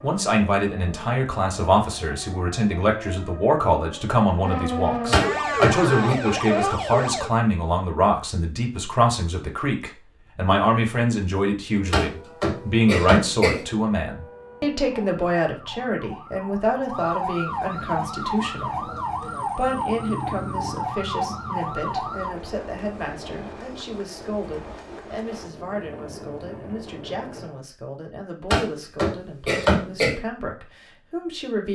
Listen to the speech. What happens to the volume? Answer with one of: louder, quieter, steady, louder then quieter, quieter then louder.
quieter.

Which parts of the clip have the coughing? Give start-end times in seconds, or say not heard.
5.1-6.2, 11.9-13.6, 28.5-30.1.